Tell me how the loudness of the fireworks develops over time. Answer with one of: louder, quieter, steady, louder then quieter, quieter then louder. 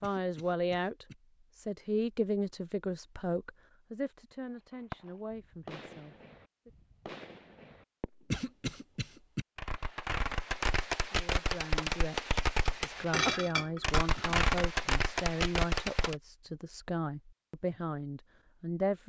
louder.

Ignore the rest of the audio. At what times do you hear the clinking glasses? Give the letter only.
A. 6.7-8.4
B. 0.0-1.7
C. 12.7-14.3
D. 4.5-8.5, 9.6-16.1
C.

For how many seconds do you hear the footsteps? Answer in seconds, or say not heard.
not heard.